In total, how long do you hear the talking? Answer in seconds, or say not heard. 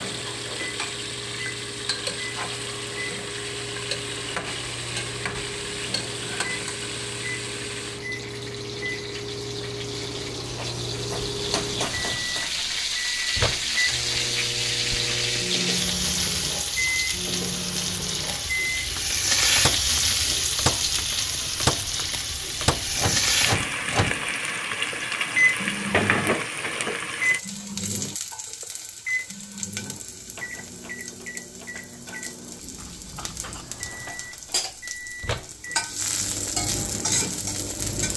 not heard.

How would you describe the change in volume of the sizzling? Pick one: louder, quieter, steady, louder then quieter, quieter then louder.
louder then quieter.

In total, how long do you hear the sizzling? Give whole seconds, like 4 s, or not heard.
38 s.